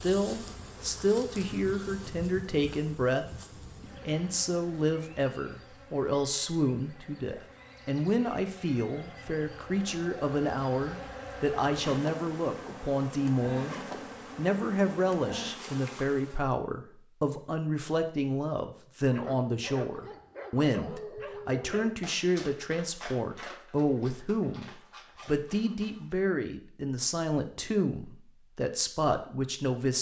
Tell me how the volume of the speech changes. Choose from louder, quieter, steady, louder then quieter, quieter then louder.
steady.